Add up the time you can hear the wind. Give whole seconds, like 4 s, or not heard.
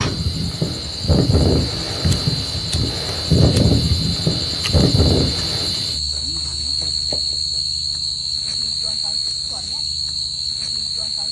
6 s.